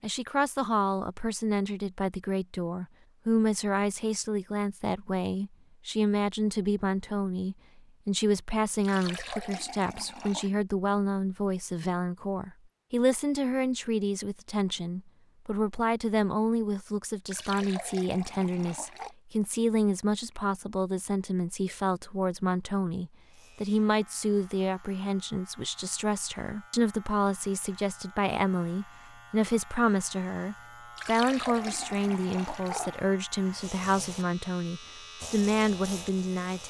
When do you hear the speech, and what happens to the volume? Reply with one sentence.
You can hear the speech from 0.0 to 36.6 s, at a steady volume.